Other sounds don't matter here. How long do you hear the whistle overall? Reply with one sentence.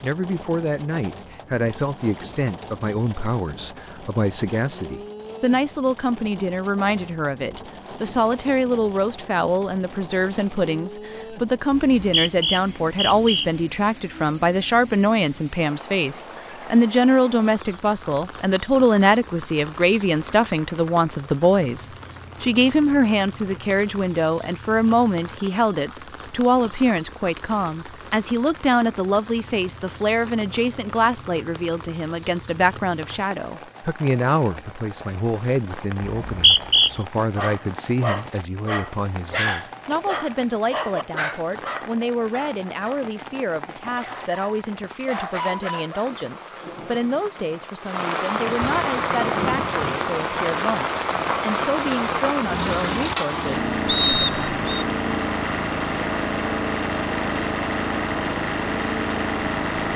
The whistle can be heard for 4 seconds in total.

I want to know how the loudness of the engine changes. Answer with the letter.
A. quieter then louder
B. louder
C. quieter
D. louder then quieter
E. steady
B.